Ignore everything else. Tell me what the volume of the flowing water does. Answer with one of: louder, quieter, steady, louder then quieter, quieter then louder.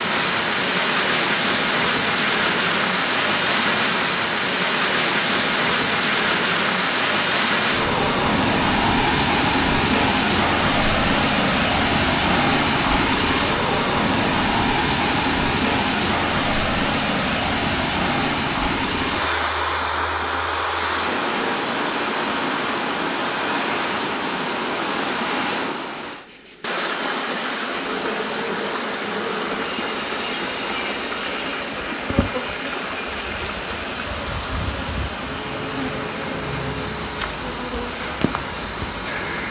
quieter.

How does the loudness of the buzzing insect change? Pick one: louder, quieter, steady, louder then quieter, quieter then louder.
louder.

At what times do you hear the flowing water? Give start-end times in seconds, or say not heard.
0.0-39.4.